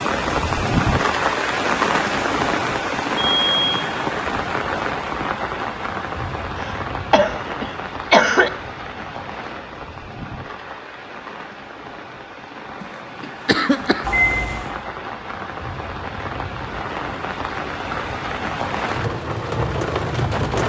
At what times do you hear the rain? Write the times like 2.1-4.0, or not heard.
0.0-20.6.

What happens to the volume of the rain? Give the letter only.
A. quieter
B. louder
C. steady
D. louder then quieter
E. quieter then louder
E.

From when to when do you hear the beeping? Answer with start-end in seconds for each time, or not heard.
3.1-3.8, 14.0-14.8.